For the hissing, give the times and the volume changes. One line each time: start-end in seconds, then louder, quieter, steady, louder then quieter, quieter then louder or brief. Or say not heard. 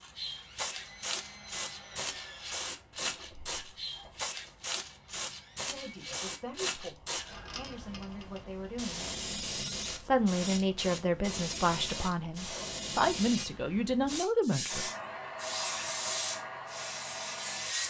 0.0-17.8 steady.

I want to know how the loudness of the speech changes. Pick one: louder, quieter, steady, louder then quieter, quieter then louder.
louder.